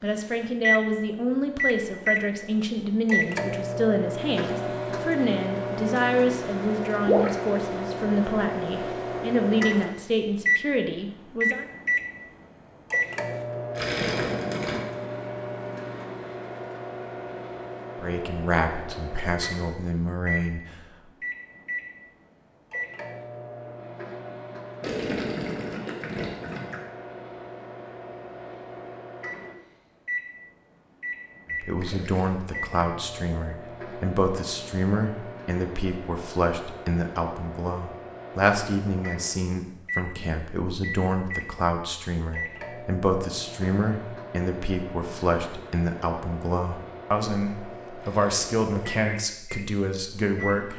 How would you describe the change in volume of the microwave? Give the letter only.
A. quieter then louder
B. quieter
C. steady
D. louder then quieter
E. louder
B.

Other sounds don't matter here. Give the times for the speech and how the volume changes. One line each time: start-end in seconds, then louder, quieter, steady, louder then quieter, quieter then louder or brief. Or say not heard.
0.0-11.7 steady
17.9-20.8 brief
31.5-50.7 steady.